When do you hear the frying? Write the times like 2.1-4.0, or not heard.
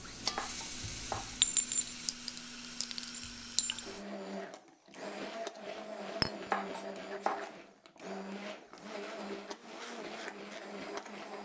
0.0-4.0.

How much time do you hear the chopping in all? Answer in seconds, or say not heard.
2 s.